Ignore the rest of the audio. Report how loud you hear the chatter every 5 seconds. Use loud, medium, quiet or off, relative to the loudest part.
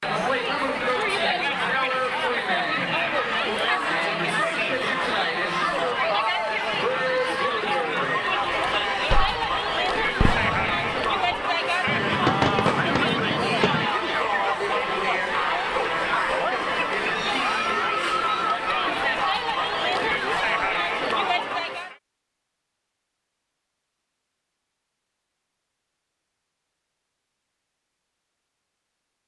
loud, loud, loud, loud, loud, off.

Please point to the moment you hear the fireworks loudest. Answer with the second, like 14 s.
12 s.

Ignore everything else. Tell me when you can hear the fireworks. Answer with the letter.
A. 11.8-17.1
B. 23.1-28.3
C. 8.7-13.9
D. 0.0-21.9
C.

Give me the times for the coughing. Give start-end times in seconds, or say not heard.
not heard.